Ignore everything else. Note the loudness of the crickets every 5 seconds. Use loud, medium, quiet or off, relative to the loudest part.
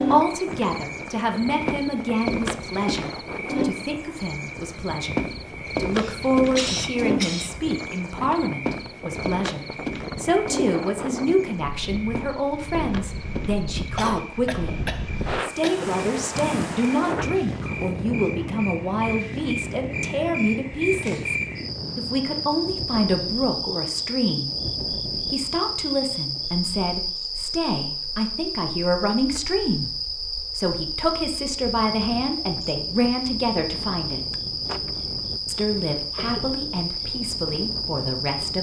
loud, loud, medium, medium, loud, loud, loud, loud.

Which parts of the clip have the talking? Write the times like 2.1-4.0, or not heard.
0.0-14.8, 15.4-21.4, 21.9-24.5, 25.3-29.9, 30.6-34.2, 35.5-38.5.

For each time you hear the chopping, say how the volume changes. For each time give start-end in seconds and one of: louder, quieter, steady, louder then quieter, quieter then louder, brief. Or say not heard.
not heard.